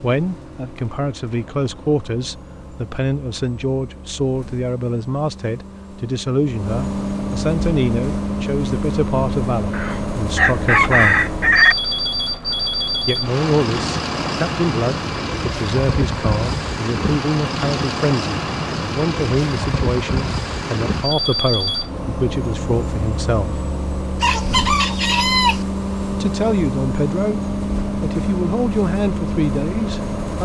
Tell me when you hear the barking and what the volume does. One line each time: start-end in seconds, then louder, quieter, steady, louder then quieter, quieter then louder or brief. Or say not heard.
not heard.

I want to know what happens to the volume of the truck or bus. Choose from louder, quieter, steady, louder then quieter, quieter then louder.
louder.